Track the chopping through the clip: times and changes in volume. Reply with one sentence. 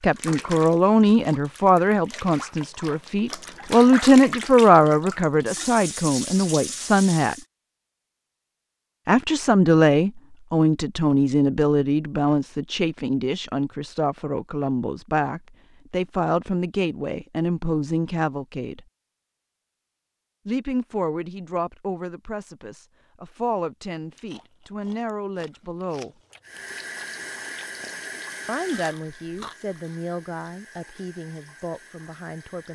The chopping can't be heard in this clip.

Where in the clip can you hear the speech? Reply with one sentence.
You can hear the speech from 0.0 to 7.3 s, from 9.1 to 18.9 s, from 20.4 to 26.1 s and from 28.4 to 32.7 s.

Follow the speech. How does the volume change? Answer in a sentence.
The volume of the speech goes down.